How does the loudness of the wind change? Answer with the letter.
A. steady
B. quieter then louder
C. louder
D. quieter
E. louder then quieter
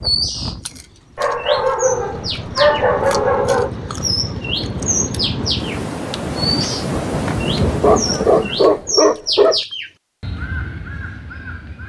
C.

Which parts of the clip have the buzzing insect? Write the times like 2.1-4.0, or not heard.
not heard.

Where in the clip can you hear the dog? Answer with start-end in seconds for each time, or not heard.
1.1-3.7, 7.7-9.6.